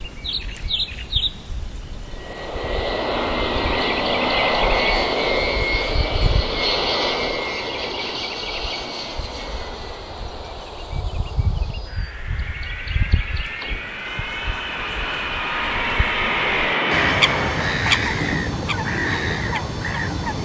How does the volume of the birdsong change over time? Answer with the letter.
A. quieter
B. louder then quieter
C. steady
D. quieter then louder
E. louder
D.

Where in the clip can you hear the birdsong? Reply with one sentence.
You can hear the birdsong from 0.0 to 20.4 s.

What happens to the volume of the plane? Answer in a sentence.
The loudness of the plane goes down, then up.